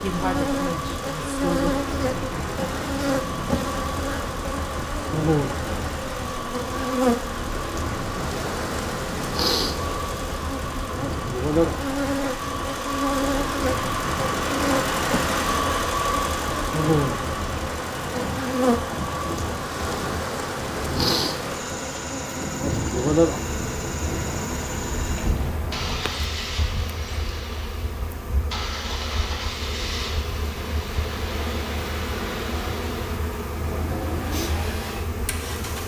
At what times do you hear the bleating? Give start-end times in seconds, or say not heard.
not heard.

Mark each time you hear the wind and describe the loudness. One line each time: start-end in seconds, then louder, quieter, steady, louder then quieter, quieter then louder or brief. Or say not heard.
0.0-26.0 steady.